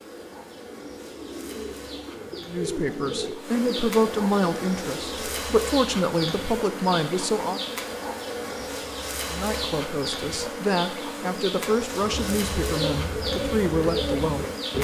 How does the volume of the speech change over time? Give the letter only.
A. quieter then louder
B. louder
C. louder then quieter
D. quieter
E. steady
E.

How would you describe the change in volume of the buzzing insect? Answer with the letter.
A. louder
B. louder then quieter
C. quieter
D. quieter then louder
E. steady
A.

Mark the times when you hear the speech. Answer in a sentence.
You can hear the speech from 2.5 to 7.6 s and from 9.3 to 14.7 s.